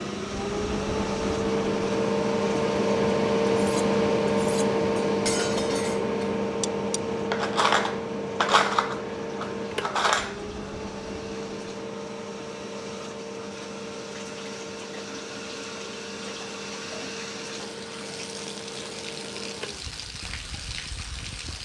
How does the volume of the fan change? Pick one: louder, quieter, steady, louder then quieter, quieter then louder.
quieter.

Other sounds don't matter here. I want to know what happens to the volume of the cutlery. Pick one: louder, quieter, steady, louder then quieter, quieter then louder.
louder then quieter.